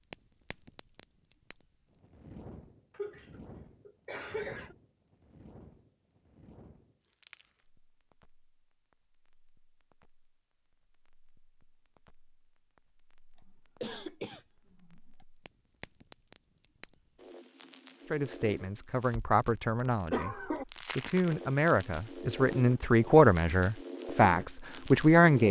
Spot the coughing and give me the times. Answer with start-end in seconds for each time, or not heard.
2.9-4.8, 13.8-15.2, 20.1-20.6.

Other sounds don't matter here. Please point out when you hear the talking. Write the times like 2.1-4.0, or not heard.
18.1-25.4.